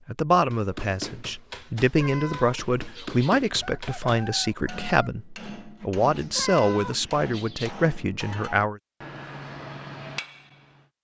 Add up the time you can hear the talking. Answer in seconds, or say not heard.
9 s.